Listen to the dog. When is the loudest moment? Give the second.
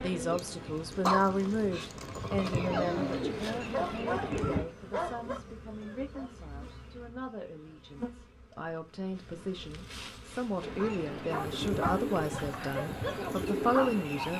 1 s.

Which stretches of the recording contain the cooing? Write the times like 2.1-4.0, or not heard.
0.0-4.7, 10.6-14.3.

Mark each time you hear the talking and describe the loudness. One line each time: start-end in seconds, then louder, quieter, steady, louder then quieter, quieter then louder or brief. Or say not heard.
0.0-14.3 quieter then louder.